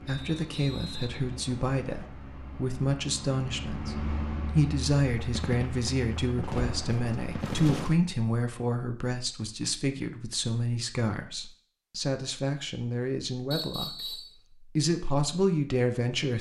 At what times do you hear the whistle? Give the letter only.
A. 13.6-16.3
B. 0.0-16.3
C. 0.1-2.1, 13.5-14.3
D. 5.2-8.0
C.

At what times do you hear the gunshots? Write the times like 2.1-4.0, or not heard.
5.2-8.0.